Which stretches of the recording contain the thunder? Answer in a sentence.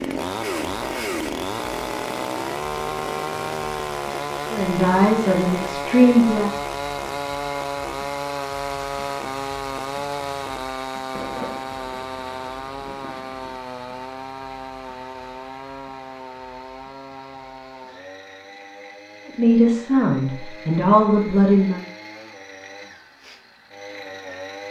You can hear the thunder from 11.1 to 13.6 s.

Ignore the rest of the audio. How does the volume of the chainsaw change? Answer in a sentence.
The loudness of the chainsaw goes down.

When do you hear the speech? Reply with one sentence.
You can hear the speech from 4.5 to 6.5 s and from 19.2 to 21.8 s.